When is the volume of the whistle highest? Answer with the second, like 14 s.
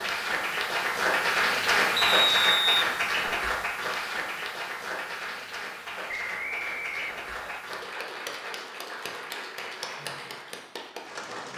2 s.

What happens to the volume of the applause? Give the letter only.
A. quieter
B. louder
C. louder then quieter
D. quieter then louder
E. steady
A.